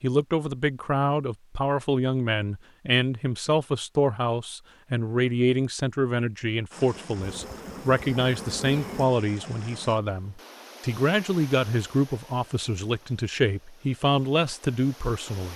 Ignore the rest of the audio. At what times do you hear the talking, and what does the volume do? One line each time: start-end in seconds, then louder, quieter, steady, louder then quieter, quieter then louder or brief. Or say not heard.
0.0-15.5 steady.